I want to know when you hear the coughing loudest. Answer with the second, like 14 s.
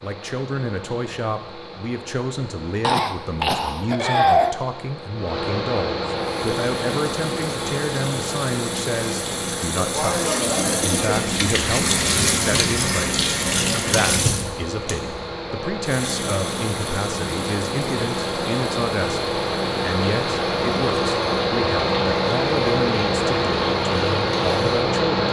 4 s.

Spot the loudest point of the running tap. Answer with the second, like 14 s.
12 s.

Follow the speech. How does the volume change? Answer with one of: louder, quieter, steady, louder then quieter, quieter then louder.
steady.